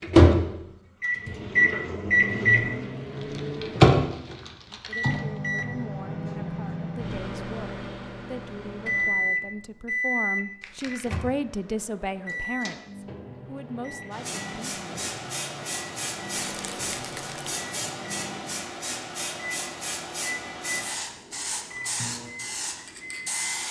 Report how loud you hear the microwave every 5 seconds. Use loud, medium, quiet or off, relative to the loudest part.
loud, medium, quiet, quiet, quiet.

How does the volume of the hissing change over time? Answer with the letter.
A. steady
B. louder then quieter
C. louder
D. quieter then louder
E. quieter
A.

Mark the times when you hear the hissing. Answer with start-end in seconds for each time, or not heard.
14.1-23.6.